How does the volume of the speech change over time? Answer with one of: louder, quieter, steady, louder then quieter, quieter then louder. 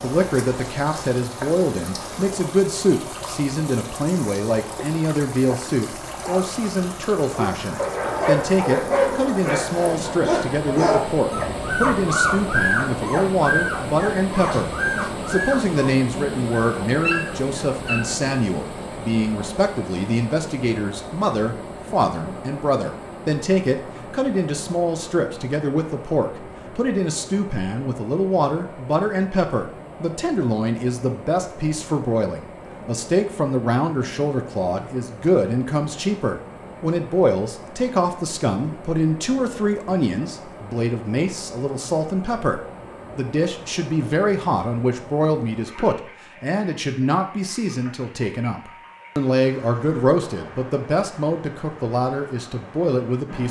steady.